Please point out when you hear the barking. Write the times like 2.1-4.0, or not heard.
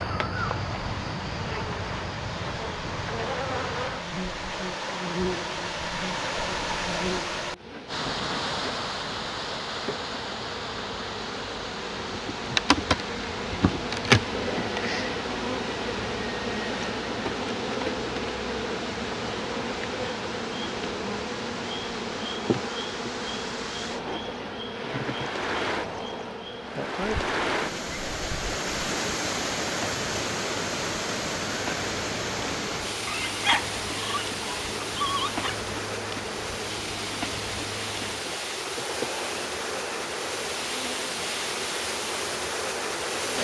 33.0-35.5.